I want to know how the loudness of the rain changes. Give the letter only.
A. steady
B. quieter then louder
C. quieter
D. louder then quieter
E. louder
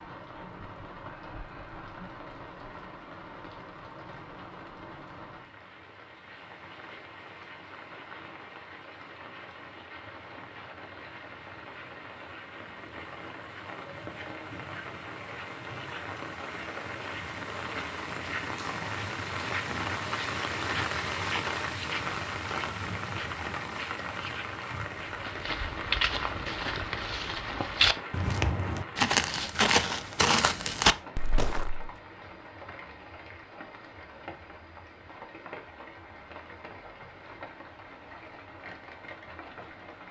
D.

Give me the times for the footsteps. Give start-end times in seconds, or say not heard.
25.1-31.9.